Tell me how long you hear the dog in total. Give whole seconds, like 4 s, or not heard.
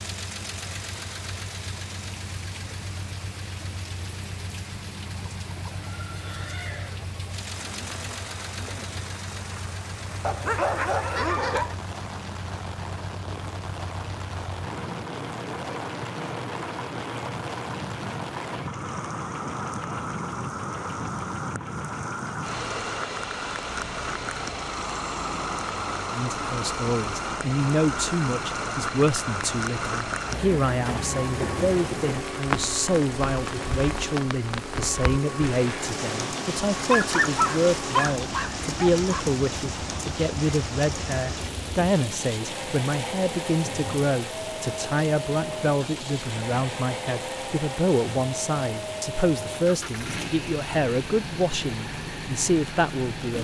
4 s.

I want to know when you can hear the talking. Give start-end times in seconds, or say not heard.
26.1-53.4.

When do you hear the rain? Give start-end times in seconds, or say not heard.
0.1-53.4.